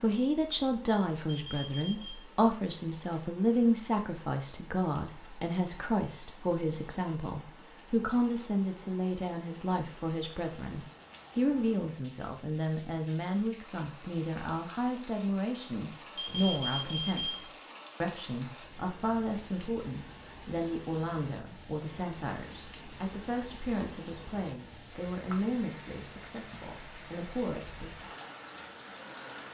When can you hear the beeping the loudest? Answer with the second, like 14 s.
17 s.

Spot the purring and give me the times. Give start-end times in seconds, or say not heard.
not heard.